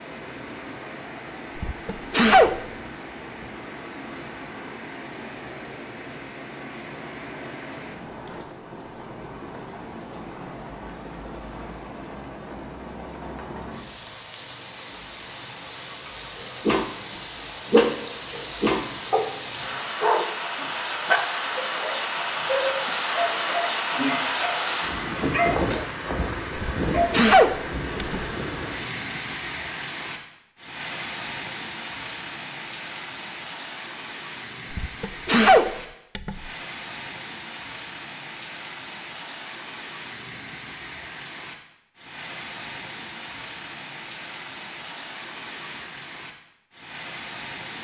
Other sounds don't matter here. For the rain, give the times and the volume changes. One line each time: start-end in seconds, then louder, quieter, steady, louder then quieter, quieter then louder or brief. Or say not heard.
0.0-47.7 louder then quieter.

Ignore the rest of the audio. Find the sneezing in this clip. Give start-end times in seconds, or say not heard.
1.6-2.6, 26.6-28.2, 34.7-36.5.